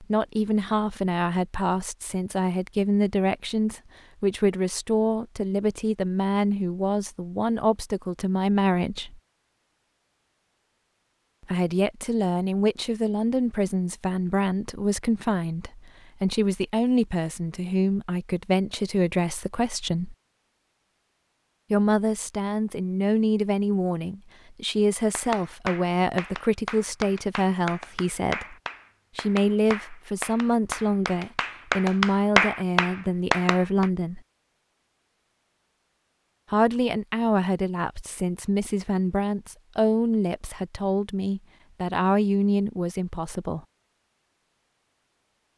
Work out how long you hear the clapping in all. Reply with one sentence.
You can hear the clapping for 9 seconds altogether.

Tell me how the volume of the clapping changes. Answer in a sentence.
The volume of the clapping goes up.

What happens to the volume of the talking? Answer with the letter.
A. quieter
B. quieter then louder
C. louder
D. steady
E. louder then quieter
D.